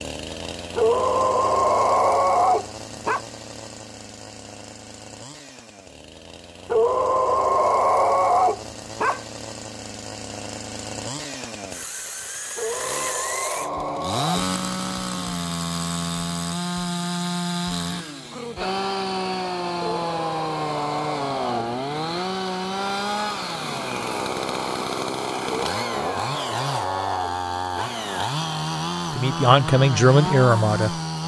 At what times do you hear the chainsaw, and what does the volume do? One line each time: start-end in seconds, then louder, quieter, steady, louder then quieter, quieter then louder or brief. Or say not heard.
0.0-31.2 louder.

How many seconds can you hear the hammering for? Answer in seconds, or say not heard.
not heard.